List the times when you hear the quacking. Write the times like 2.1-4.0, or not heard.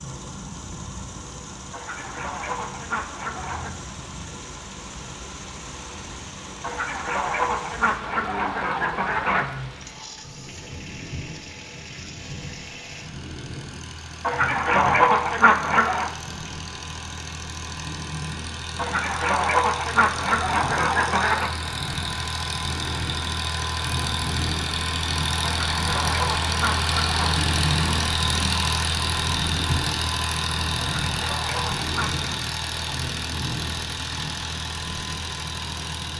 1.7-3.7, 6.6-9.4, 14.2-16.1, 18.8-21.5, 25.4-27.4, 31.0-32.4.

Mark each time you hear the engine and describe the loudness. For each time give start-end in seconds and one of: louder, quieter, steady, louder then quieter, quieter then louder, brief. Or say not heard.
0.0-36.1 louder.